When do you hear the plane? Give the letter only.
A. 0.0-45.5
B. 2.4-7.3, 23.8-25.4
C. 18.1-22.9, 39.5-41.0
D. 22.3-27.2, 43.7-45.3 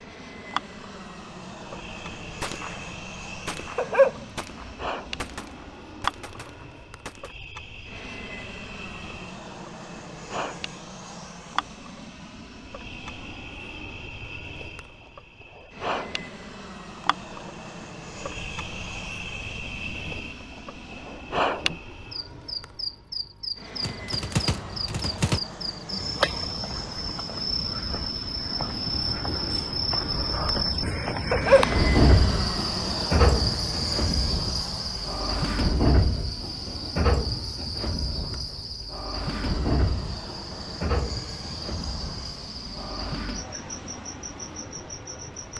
A.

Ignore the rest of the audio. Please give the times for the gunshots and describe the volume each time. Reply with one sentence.
The gunshots can be heard from 2.4 to 7.3 s, getting quieter; and briefly from 23.8 to 25.4 s.